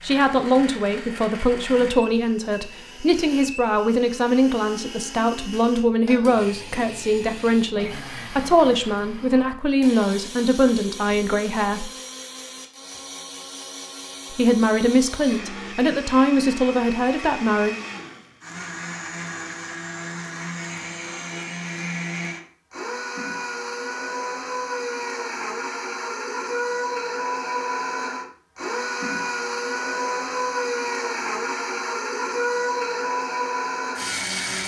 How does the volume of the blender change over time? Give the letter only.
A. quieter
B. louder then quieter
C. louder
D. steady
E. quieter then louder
C.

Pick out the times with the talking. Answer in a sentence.
You can hear the talking from 0.0 to 11.9 s and from 14.3 to 17.8 s.